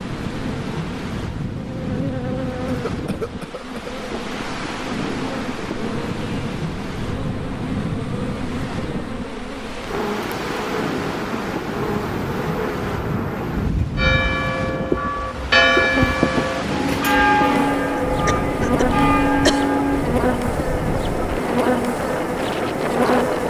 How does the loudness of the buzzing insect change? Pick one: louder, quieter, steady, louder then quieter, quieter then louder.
louder.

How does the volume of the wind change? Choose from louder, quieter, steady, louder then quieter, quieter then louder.
steady.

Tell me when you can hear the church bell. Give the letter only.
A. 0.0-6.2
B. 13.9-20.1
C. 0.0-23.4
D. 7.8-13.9
B.